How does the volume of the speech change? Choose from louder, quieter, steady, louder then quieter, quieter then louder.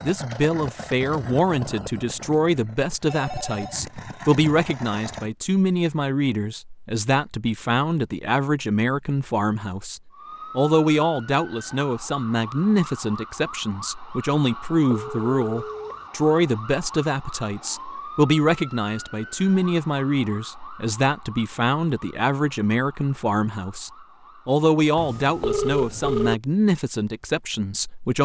steady.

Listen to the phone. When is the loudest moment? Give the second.
26 s.